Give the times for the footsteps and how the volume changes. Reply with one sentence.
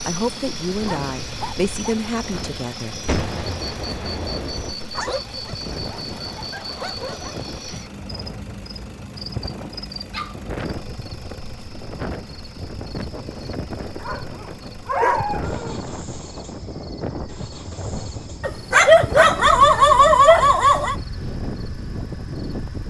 The footsteps can't be heard in this clip.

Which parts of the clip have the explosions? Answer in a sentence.
The explosions can be heard from 3.0 to 4.8 s.